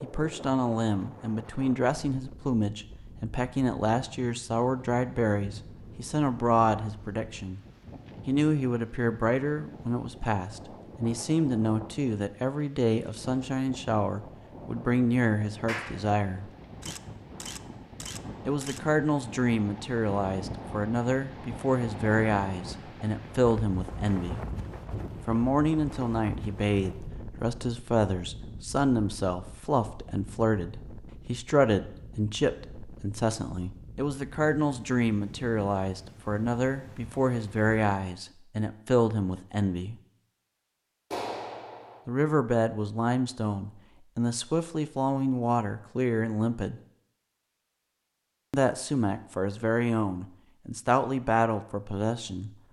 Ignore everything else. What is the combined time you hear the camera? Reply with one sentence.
You can hear the camera for 2 seconds altogether.